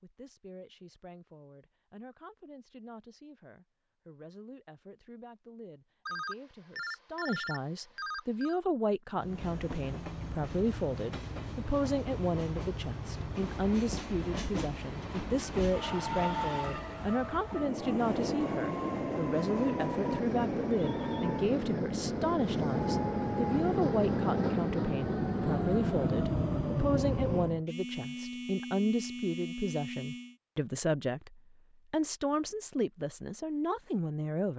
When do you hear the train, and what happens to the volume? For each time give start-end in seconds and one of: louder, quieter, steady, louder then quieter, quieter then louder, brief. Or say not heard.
9.2-27.6 louder.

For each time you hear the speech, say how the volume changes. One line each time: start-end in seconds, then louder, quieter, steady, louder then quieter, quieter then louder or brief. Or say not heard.
0.0-34.5 louder.